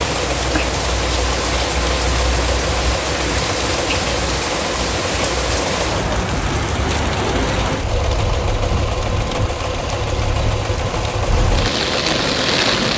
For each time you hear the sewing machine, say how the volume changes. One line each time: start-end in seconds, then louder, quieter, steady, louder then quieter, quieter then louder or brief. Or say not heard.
0.0-12.9 steady.